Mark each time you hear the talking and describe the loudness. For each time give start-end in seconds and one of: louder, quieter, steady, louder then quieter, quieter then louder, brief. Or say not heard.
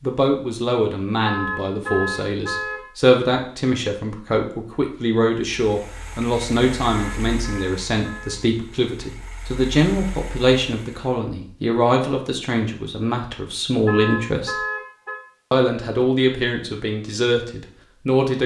0.0-14.6 steady
15.5-18.4 brief.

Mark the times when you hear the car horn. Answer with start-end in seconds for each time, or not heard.
1.2-2.9, 6.9-8.4, 13.8-15.2.